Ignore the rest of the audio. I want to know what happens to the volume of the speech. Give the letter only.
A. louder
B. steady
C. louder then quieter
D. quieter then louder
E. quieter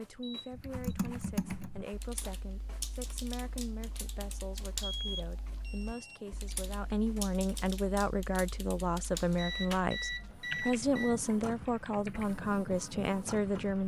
A.